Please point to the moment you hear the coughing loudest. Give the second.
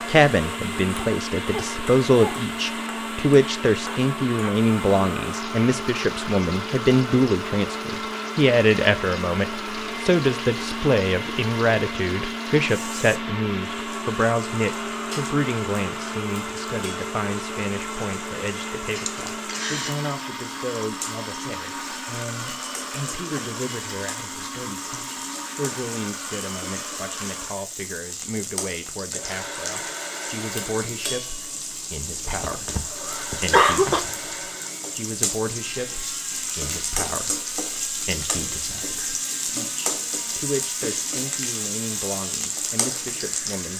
34 s.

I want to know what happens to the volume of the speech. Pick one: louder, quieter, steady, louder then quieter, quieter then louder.
quieter.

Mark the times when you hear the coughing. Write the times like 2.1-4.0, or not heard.
0.9-2.5, 18.9-19.9, 32.2-34.0.